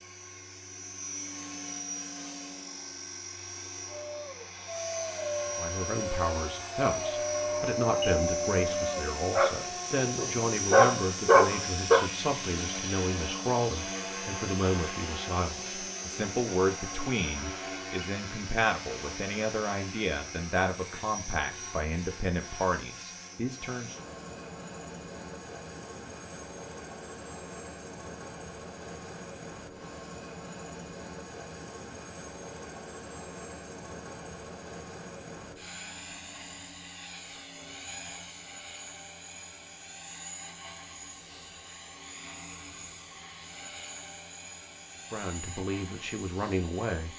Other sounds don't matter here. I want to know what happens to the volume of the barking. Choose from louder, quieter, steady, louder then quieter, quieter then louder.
louder.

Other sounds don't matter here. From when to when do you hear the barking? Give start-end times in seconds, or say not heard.
3.9-12.0.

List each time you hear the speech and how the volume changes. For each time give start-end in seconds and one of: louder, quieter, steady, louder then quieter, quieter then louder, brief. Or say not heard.
5.5-24.0 steady
45.1-47.1 brief.